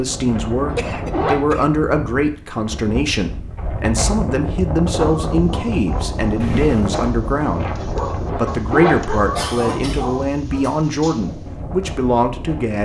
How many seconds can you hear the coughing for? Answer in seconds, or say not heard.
3 s.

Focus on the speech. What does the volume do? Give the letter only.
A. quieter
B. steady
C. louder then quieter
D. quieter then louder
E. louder
B.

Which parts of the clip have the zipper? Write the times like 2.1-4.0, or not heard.
0.7-1.4, 8.2-9.1.